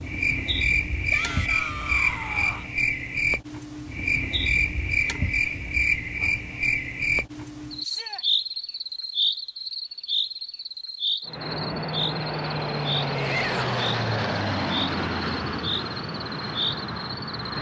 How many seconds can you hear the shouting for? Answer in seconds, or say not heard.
3 s.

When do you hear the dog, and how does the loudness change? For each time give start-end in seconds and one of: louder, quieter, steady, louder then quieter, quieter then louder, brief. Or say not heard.
not heard.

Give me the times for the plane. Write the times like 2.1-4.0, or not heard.
11.2-17.5.